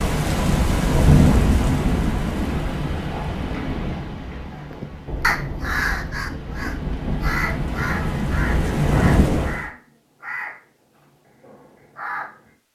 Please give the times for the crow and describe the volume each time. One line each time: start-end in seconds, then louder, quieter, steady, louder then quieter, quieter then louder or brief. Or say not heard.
4.5-12.5 quieter.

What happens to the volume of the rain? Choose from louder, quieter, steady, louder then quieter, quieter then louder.
quieter then louder.